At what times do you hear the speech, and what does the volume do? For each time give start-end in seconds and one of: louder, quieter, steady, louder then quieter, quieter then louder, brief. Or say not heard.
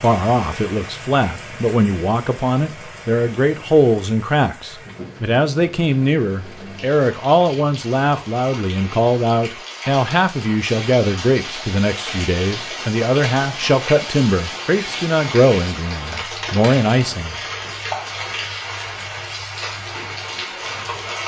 0.0-17.4 steady.